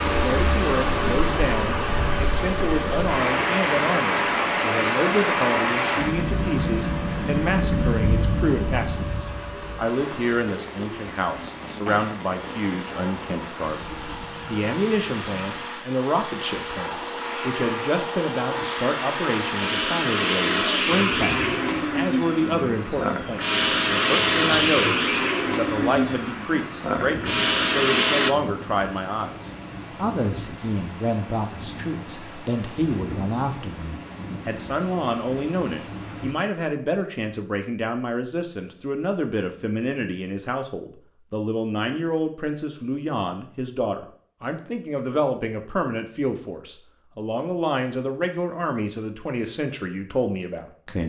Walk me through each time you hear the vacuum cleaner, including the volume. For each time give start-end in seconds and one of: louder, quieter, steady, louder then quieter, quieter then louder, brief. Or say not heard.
0.0-28.4 quieter then louder.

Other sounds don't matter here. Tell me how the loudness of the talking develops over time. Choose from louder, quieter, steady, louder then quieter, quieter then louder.
steady.